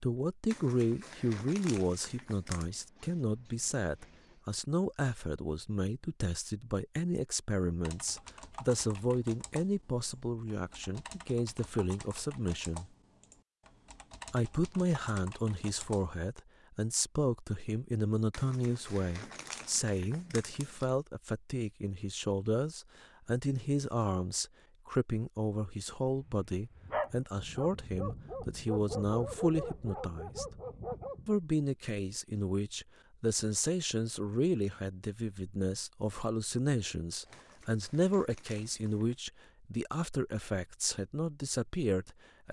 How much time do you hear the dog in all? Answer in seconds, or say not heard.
5 s.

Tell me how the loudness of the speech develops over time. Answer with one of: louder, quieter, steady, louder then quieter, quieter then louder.
steady.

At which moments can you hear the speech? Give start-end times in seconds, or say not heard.
0.0-12.9, 14.3-30.4, 31.2-42.4.